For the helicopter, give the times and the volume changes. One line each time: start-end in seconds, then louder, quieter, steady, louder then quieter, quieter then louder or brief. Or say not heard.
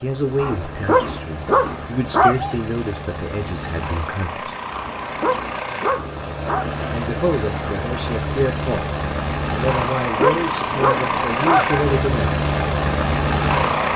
0.0-13.9 louder.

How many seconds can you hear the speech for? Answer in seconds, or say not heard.
10 s.